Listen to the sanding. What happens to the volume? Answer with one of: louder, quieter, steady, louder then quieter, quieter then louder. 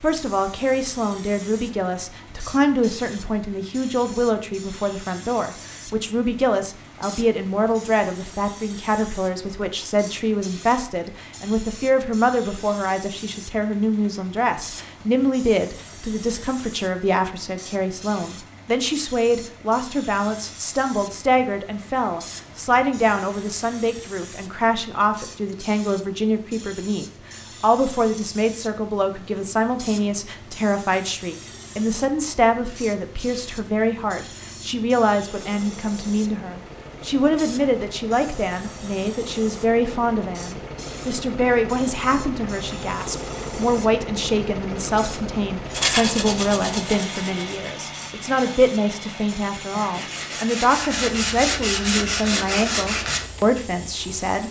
quieter then louder.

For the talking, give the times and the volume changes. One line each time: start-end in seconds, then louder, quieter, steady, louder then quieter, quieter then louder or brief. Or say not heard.
0.0-54.4 steady.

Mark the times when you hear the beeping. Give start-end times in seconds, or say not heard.
not heard.